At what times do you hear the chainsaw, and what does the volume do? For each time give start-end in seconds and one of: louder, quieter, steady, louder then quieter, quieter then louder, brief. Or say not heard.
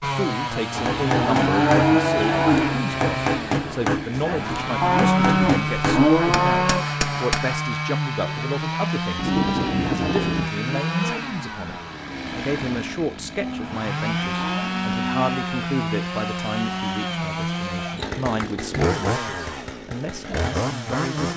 0.0-21.3 steady.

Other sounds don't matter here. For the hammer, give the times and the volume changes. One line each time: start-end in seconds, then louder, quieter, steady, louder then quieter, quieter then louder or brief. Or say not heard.
0.7-7.7 quieter.